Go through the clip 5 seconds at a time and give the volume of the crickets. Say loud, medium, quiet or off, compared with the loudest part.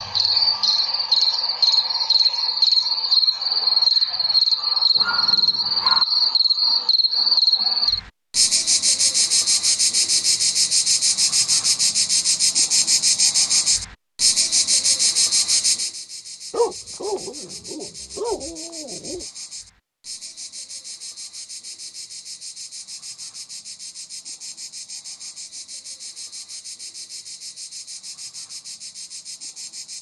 loud, loud, loud, medium, quiet, quiet.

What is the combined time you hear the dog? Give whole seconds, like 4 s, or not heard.
4 s.